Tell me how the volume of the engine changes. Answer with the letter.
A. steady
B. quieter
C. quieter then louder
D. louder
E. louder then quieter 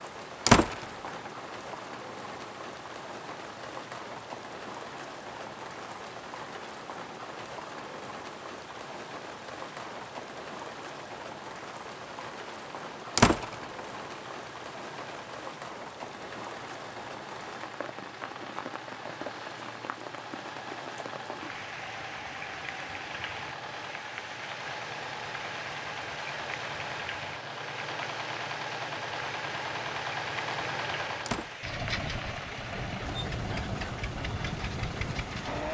D.